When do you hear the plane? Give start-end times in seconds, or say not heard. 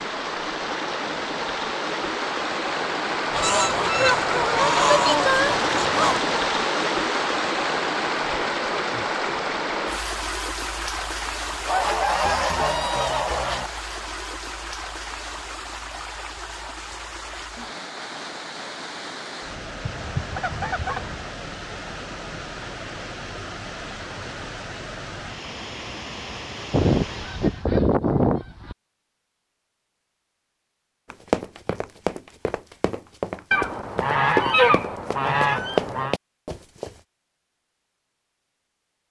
not heard.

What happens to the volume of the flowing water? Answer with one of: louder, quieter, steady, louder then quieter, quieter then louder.
quieter.